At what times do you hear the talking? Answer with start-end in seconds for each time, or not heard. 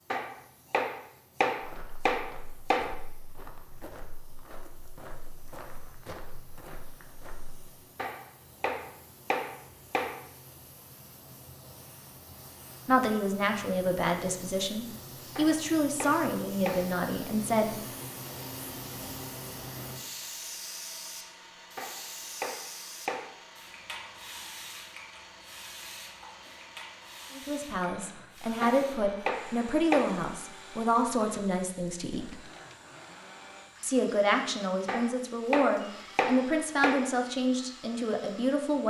12.8-17.8, 27.3-32.4, 33.8-38.8.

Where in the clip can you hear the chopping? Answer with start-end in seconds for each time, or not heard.
0.1-2.9, 8.0-10.2, 15.3-16.9, 21.8-23.3, 28.6-30.1, 34.9-37.1.